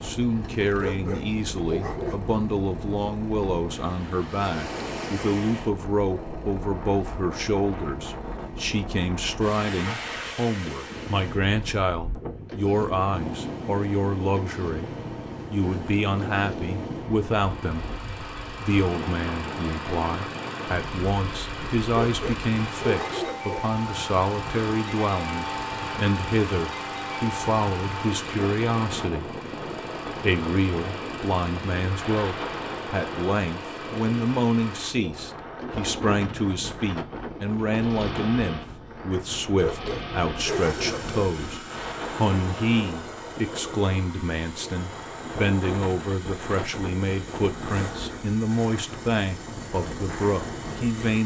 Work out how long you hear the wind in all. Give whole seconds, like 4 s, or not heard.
51 s.